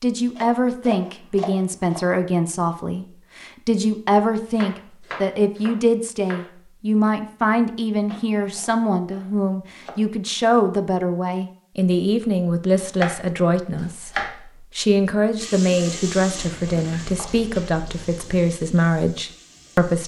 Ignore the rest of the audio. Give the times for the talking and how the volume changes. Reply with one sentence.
You can hear the talking from 0.0 to 20.0 s, at a steady volume.